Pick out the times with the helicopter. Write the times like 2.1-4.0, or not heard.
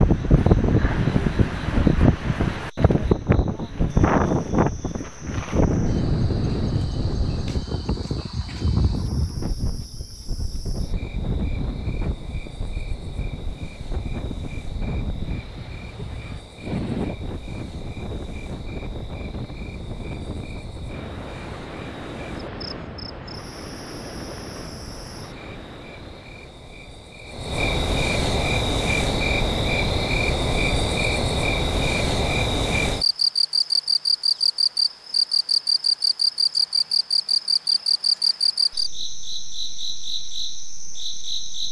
not heard.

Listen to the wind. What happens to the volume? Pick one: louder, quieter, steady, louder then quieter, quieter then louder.
quieter.